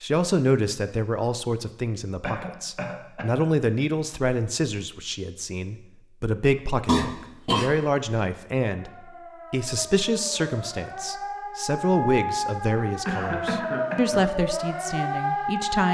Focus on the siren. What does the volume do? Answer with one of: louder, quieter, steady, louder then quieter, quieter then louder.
louder.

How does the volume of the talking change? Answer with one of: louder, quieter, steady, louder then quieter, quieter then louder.
steady.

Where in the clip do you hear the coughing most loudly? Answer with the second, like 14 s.
7 s.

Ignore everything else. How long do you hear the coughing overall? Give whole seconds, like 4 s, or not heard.
3 s.